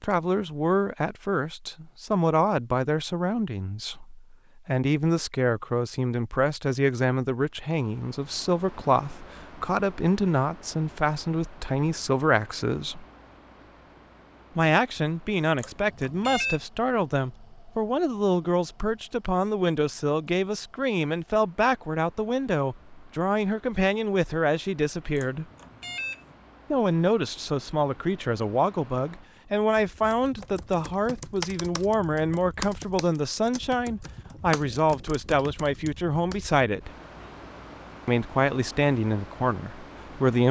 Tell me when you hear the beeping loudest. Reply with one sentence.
The volume of the beeping peaks at 16 seconds.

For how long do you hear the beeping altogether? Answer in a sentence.
The beeping can be heard for 2 seconds in total.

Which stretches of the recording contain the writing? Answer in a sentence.
You can't hear the writing here.